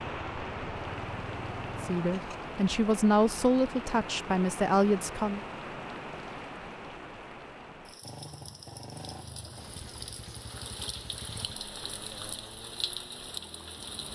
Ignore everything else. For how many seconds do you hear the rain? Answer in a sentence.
You can hear the rain for 14 seconds altogether.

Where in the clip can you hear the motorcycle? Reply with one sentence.
You can hear the motorcycle from 0.1 to 2.4 s and from 8.0 to 14.0 s.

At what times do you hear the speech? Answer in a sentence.
You can hear the speech from 1.8 to 5.4 s.